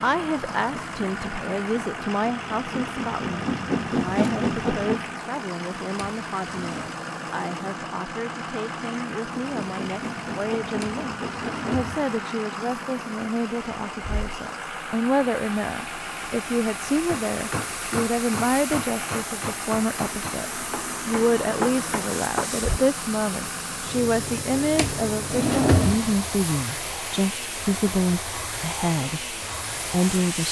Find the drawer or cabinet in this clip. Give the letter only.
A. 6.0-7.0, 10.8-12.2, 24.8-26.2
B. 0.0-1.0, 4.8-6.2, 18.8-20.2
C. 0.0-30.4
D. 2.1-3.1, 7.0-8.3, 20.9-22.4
A.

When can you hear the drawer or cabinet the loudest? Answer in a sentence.
The volume of the drawer or cabinet peaks at 26 seconds.